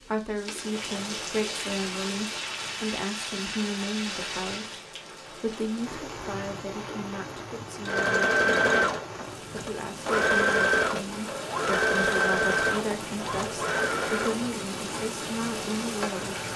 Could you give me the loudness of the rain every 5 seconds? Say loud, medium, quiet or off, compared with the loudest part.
loud, medium, loud, loud.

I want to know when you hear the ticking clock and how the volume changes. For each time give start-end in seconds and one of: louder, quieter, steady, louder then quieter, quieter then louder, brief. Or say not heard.
not heard.